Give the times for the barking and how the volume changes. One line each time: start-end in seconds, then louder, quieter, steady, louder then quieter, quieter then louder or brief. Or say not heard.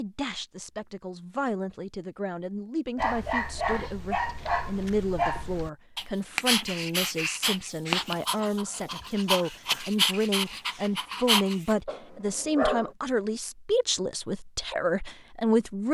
3.0-12.9 steady.